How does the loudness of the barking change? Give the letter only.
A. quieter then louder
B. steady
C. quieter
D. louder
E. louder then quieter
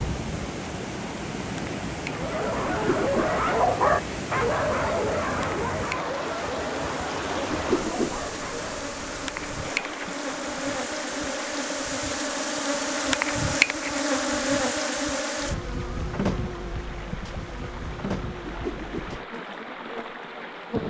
C.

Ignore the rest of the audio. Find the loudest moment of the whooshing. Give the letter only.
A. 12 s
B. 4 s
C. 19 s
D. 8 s
D.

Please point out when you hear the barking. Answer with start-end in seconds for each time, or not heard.
2.1-8.8.